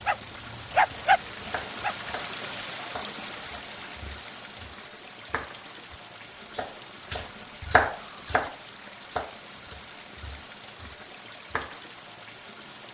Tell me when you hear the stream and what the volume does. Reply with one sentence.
The stream can be heard from 0.0 to 12.9 s, getting quieter.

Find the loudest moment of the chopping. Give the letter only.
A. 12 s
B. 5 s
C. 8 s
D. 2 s
C.